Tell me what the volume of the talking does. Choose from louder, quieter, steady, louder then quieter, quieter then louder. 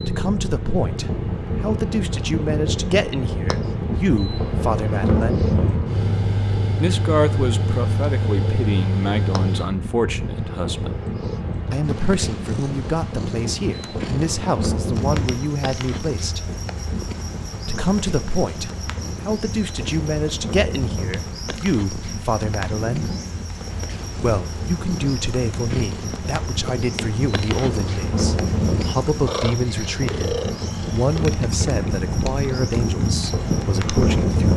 steady.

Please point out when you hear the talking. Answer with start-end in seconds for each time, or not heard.
0.1-5.5, 6.8-10.9, 11.7-16.5, 17.6-23.1, 24.1-34.5.